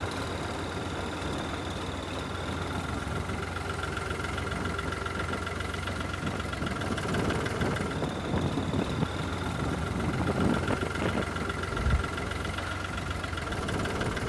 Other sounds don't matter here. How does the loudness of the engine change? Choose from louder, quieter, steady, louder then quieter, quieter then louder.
steady.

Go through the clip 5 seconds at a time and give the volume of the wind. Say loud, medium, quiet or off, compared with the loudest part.
medium, loud, loud.